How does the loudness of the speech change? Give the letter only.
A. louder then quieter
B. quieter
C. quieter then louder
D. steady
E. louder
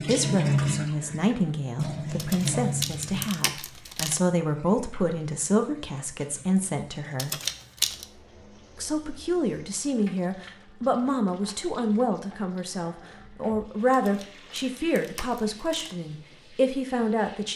D.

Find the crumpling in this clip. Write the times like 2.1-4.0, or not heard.
2.1-4.2, 7.2-8.1, 13.9-15.9.